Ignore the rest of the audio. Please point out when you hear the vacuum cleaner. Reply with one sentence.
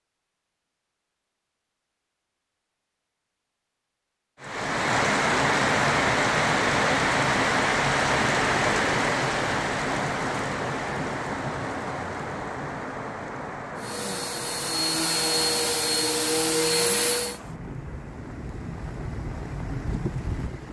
You can hear the vacuum cleaner from 13.8 to 17.4 s.